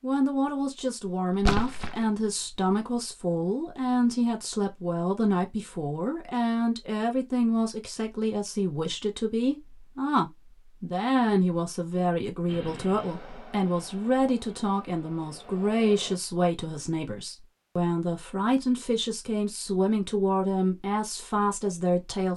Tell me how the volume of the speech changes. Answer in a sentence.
The volume of the speech stays about the same.